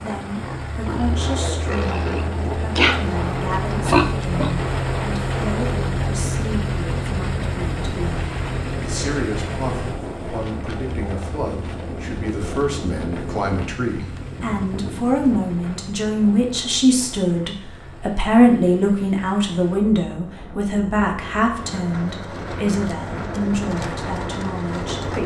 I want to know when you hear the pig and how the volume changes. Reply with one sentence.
The pig can be heard from 0.0 to 4.5 s, getting louder.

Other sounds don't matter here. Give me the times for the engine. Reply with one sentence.
You can hear the engine from 0.0 to 25.2 s.